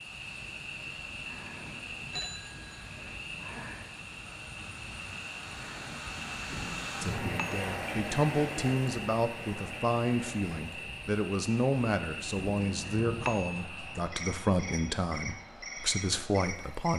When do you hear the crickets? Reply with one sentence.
You can hear the crickets from 0.0 to 16.9 s.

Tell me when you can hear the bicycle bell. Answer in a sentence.
The bicycle bell can be heard from 2.1 to 3.2 s, from 6.5 to 7.7 s and from 12.3 to 13.7 s.